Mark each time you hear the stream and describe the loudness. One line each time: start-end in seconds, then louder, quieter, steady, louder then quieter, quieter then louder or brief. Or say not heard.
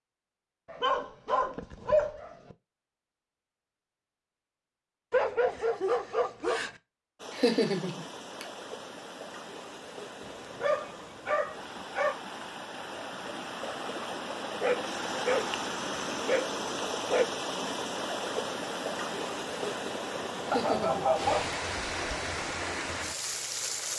7.2-23.9 louder.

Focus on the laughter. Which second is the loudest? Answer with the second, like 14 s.
8 s.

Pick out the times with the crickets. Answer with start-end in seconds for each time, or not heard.
not heard.